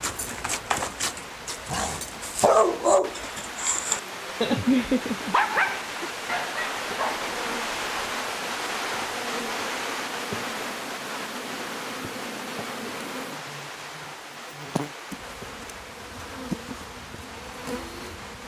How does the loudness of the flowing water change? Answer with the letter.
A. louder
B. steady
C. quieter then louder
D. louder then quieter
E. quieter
D.